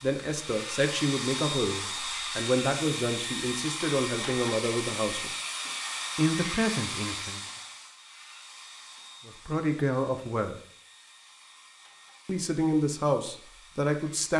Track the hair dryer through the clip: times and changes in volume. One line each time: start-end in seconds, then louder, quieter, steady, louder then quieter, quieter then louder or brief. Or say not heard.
0.0-14.3 quieter.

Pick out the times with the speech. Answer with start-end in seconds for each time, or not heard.
0.0-5.3, 6.2-7.4, 9.2-10.6, 12.2-14.3.